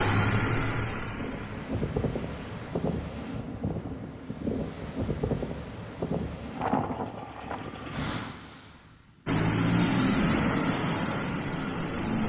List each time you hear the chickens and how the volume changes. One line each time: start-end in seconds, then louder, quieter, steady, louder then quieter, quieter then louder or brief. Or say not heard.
not heard.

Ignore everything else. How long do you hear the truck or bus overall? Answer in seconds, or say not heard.
6 s.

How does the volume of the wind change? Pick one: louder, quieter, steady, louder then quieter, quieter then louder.
quieter.